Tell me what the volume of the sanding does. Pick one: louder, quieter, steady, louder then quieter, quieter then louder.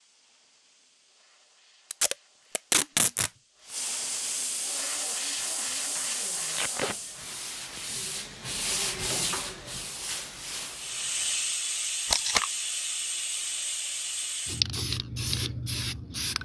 louder then quieter.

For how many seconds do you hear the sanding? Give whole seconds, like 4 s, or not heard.
7 s.